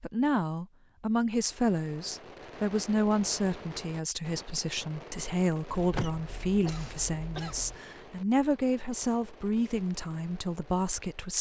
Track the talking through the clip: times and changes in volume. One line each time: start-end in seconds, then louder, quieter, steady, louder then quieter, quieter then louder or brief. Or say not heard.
0.0-11.3 steady.